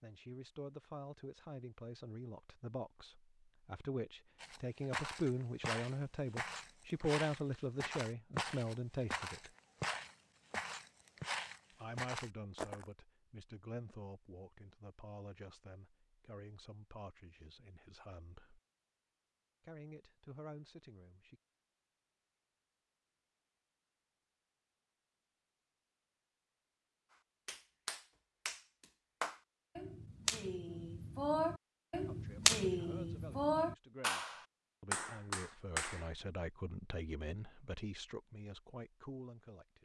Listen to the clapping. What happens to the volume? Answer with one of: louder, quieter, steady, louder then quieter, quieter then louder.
louder then quieter.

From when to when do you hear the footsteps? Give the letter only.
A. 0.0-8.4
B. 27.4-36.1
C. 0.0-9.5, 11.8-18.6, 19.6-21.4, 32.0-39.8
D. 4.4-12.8
D.